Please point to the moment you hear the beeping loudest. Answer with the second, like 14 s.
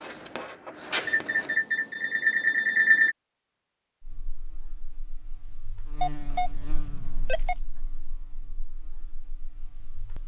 3 s.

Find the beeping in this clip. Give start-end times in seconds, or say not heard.
1.1-3.1, 6.0-7.6.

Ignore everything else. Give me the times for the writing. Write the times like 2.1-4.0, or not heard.
0.0-1.6.